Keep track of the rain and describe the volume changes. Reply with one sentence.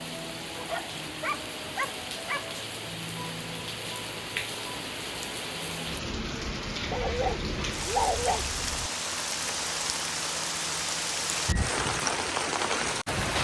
The volume of the rain goes up.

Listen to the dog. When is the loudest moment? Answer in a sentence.
The volume of the dog peaks at 8 seconds.